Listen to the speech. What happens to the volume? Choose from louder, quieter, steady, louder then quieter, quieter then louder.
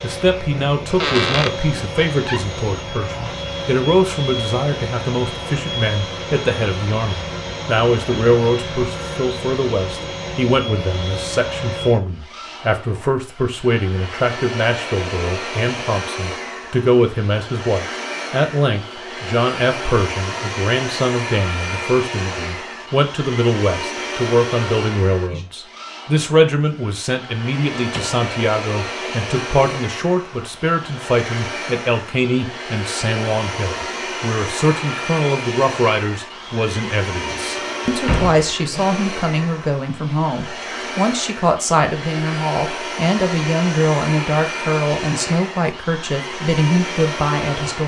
steady.